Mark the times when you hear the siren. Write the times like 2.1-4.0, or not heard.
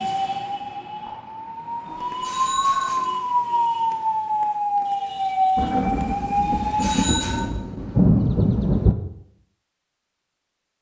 0.0-7.5.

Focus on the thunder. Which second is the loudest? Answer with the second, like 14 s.
8 s.